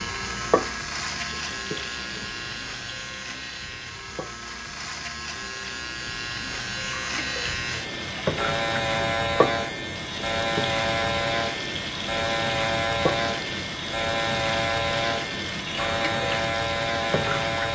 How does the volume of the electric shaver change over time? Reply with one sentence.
The volume of the electric shaver goes up.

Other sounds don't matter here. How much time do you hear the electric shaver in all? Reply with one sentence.
You can hear the electric shaver for 18 seconds altogether.